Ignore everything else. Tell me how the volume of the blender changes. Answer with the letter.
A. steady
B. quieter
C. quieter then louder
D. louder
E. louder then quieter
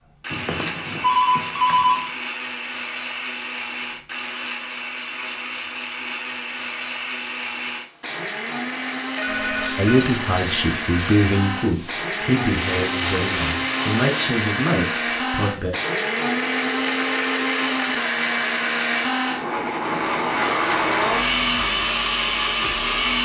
D.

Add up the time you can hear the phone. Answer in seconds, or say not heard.
4 s.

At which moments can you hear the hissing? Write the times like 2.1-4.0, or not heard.
9.2-14.3, 19.8-23.2.